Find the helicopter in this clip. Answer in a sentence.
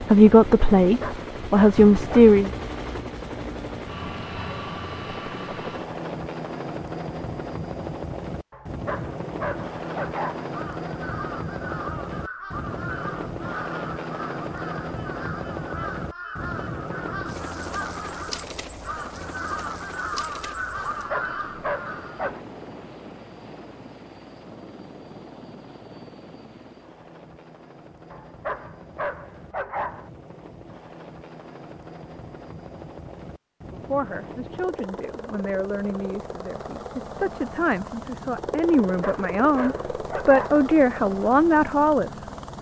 The helicopter can be heard from 0.0 to 42.5 s.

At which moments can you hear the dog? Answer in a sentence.
You can hear the dog from 0.8 to 2.2 s, from 8.5 to 10.5 s, from 20.8 to 22.4 s, from 28.1 to 30.1 s and from 38.8 to 40.6 s.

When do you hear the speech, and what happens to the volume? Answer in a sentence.
You can hear the speech briefly from 0.0 to 2.5 s; and from 33.7 to 42.2 s, getting louder.